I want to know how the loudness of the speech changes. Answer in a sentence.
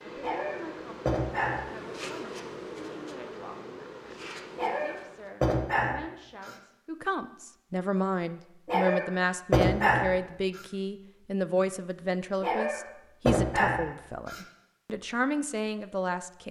The volume of the speech goes up.